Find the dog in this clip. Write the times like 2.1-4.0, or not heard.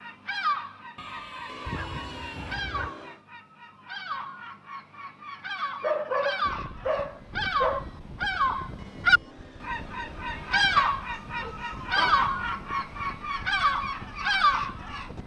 0.9-2.9, 5.8-7.8, 10.8-12.2.